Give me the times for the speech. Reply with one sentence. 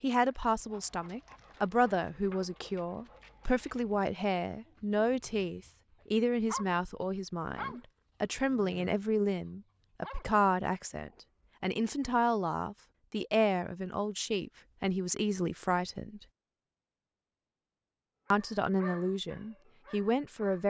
You can hear the speech from 0.0 to 16.2 s and from 18.3 to 20.6 s.